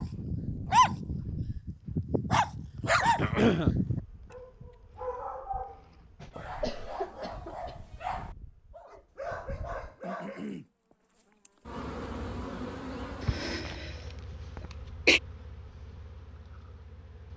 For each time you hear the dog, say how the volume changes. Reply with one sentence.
The dog can be heard from 0.0 to 10.4 s, getting quieter.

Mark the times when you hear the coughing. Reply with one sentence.
The coughing can be heard from 3.1 to 3.7 s, from 6.2 to 7.8 s, from 13.2 to 13.9 s and from 14.6 to 15.2 s.